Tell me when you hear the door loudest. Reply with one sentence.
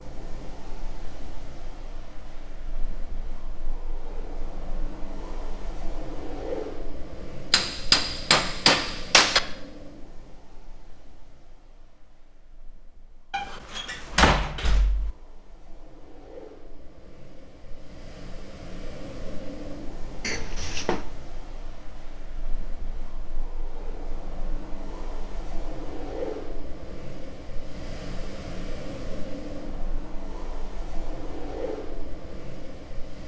The volume of the door peaks at 14 seconds.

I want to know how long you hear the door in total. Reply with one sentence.
You can hear the door for 3 seconds altogether.